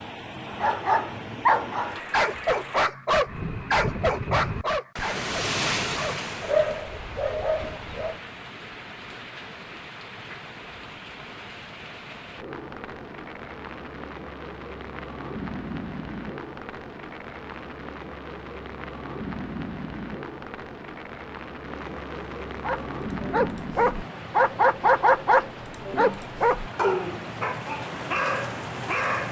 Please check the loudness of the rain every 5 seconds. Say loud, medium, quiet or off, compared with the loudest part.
loud, loud, medium, loud, loud, loud.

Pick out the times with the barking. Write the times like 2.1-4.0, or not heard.
0.5-8.2, 22.6-29.2.